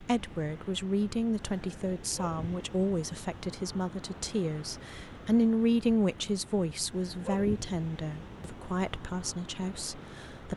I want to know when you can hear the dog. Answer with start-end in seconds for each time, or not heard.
2.0-2.6, 7.0-7.7.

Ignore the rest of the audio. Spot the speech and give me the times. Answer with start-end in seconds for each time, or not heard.
0.0-10.5.